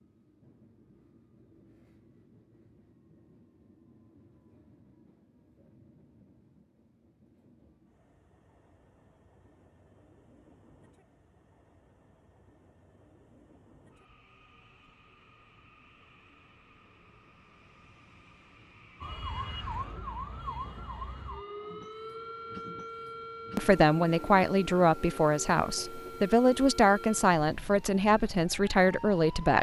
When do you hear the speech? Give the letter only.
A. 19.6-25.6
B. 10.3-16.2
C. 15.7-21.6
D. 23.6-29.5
D.